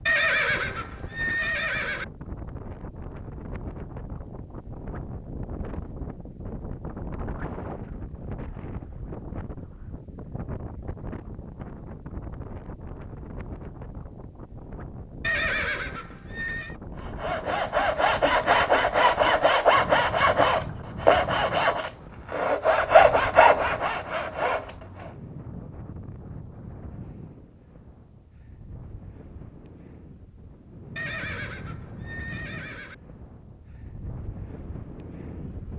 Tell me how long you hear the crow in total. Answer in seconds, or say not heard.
not heard.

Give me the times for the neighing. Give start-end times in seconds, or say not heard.
0.1-2.0, 15.2-16.8, 30.9-33.0.